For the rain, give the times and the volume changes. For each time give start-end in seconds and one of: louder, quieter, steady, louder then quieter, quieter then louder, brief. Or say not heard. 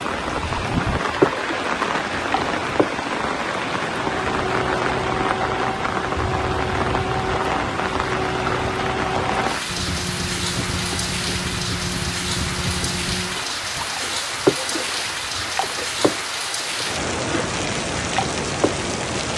0.0-19.3 steady.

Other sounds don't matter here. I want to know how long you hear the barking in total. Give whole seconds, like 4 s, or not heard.
not heard.